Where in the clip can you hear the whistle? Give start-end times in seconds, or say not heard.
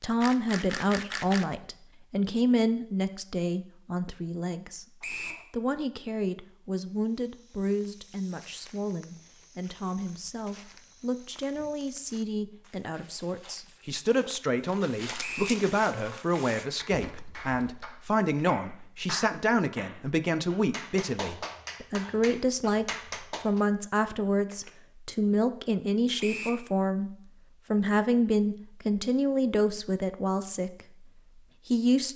5.0-5.5, 15.2-15.6, 26.2-26.6.